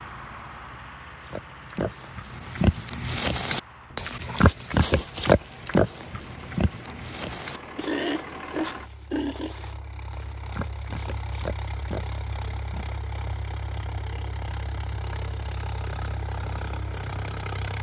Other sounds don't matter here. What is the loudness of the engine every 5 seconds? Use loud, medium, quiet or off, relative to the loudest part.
medium, medium, loud, loud.